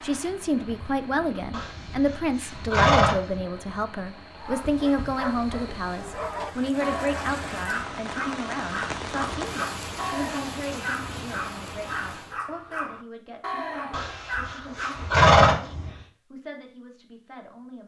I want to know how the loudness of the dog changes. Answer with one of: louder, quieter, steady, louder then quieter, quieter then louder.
steady.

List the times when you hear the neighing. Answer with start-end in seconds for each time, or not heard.
1.5-3.4, 13.9-15.9.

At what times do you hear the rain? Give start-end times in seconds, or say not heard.
0.0-12.4.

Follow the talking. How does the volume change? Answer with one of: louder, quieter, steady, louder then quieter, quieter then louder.
quieter.